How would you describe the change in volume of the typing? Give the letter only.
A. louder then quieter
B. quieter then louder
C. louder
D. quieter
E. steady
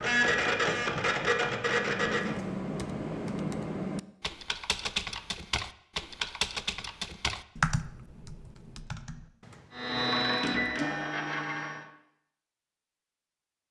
D.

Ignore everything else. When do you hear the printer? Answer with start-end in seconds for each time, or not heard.
0.0-2.4, 9.8-11.8.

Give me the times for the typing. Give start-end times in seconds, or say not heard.
1.8-9.9.